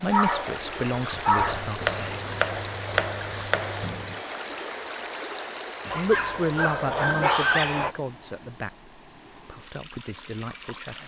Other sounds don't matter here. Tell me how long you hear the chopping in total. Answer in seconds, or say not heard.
3 s.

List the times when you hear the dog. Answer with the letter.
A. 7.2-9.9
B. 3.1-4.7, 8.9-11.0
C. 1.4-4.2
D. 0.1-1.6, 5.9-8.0
D.